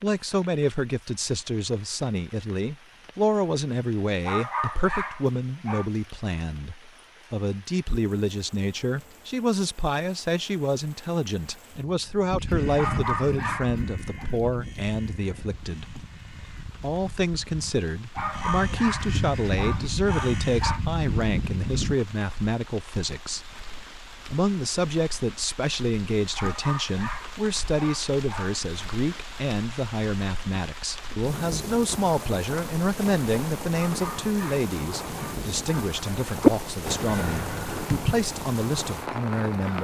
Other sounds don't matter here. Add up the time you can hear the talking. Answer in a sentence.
You can hear the talking for 38 seconds altogether.